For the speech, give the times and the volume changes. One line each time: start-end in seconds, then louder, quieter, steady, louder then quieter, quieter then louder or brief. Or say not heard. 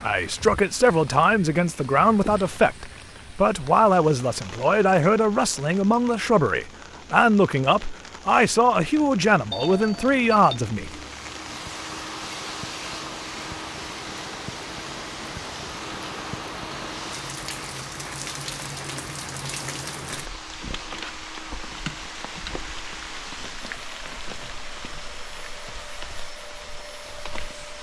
0.0-11.0 steady.